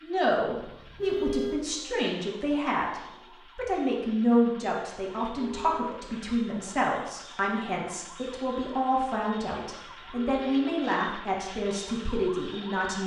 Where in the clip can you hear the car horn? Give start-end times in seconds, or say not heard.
0.6-1.6, 5.2-6.0, 9.8-10.9.